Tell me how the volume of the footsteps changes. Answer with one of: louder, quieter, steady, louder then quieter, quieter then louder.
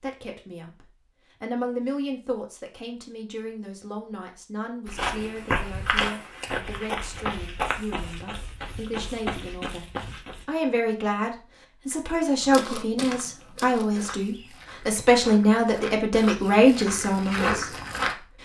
quieter then louder.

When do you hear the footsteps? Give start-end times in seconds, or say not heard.
4.8-10.4, 12.4-18.1.